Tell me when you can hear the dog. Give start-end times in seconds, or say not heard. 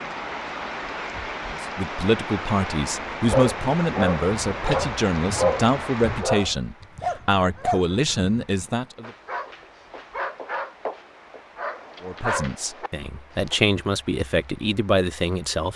3.1-13.6.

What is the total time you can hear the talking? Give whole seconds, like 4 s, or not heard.
11 s.